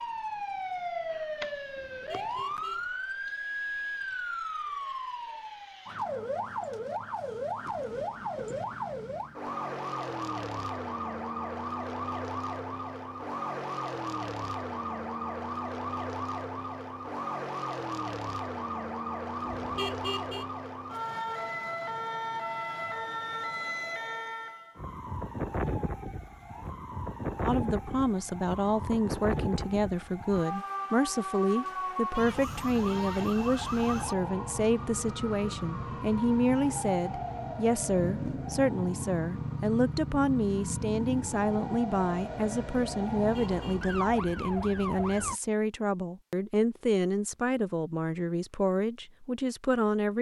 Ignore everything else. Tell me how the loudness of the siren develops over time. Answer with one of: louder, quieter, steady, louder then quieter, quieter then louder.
steady.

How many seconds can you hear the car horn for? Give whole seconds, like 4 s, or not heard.
3 s.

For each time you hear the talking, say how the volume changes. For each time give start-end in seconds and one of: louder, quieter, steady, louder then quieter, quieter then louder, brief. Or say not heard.
27.4-50.1 steady.